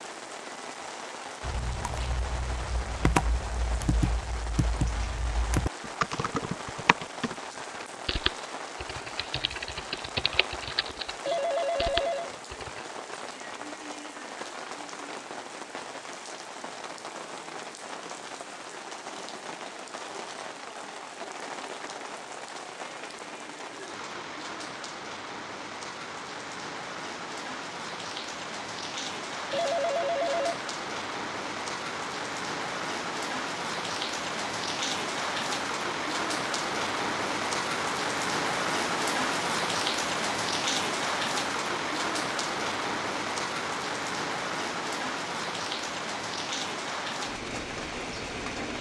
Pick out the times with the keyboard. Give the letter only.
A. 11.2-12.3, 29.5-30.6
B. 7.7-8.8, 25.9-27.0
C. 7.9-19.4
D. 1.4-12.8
D.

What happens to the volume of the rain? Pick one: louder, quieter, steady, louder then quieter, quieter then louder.
louder.